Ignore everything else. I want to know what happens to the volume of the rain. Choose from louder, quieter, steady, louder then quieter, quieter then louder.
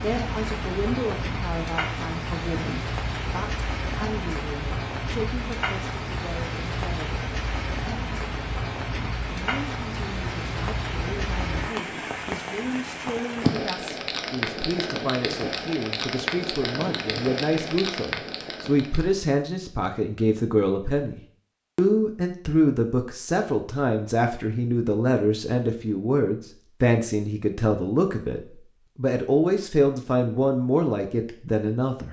steady.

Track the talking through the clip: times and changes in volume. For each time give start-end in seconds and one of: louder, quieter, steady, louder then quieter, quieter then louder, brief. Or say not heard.
0.0-7.2 quieter
9.3-32.0 louder.